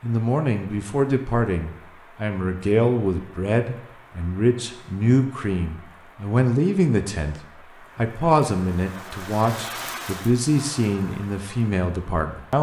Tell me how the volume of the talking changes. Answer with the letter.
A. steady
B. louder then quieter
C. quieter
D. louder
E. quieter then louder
A.